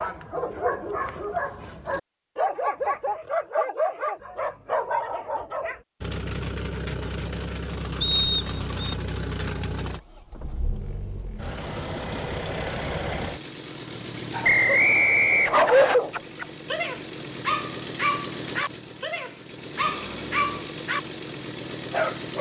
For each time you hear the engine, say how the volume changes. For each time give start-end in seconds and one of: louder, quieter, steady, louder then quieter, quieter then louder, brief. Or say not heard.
6.0-22.3 steady.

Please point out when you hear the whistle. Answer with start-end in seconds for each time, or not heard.
8.0-8.7, 14.4-15.9.